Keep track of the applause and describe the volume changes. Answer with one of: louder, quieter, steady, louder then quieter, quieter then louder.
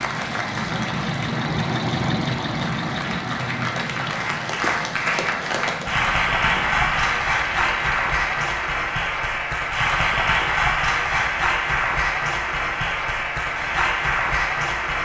louder.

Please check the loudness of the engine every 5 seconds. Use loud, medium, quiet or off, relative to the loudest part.
loud, medium, off.